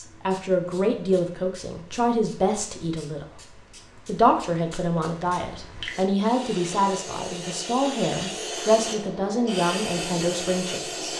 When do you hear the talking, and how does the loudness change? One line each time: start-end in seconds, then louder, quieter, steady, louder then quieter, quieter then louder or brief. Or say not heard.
0.0-11.1 steady.